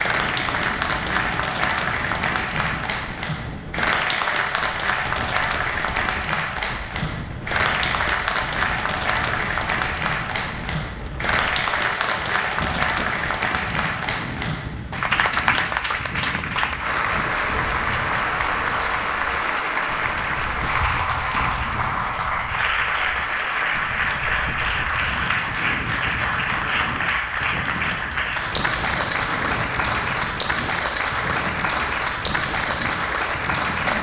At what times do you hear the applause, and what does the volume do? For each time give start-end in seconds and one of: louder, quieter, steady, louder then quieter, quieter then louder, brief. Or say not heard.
0.0-33.9 steady.